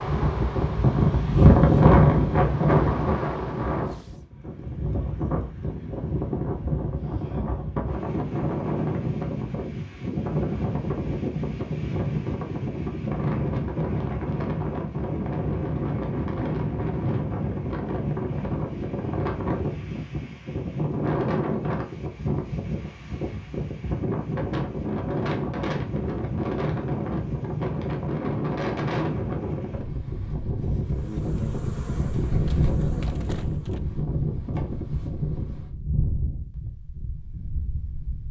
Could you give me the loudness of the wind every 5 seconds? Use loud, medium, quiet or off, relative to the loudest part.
loud, medium, medium, medium, medium, medium, medium, quiet.